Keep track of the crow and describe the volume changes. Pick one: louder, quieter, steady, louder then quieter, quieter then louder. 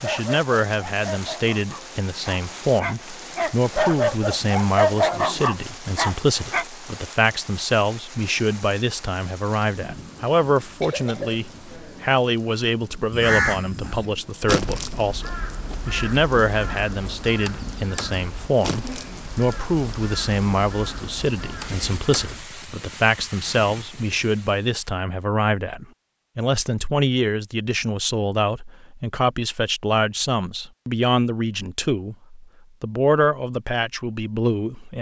quieter.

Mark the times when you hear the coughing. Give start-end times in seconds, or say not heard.
10.8-11.4.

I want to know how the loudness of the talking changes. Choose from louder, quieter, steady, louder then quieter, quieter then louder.
steady.